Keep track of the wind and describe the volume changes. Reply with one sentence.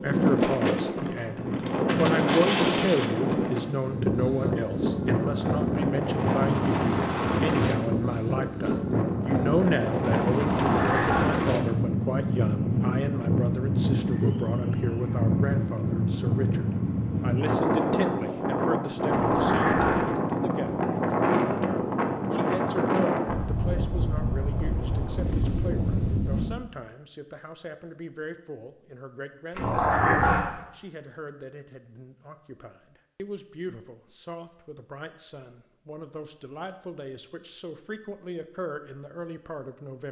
The volume of the wind stays about the same.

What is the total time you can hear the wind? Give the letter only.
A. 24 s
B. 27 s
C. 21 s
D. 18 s
B.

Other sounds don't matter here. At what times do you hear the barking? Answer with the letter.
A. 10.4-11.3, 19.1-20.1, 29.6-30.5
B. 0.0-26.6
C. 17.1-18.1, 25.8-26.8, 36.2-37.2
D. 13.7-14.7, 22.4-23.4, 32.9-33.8
A.